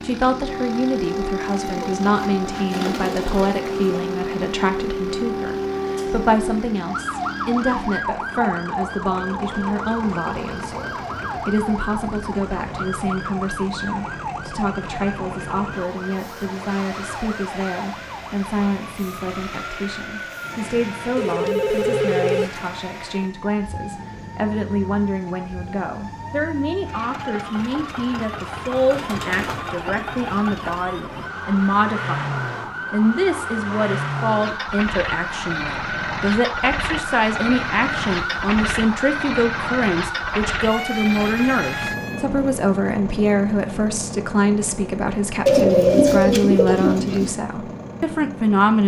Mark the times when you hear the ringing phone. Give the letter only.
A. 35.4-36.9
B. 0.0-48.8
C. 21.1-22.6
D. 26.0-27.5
C.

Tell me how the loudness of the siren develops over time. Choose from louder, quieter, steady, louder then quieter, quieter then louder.
quieter then louder.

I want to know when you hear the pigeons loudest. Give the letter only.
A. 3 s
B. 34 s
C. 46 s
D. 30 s
C.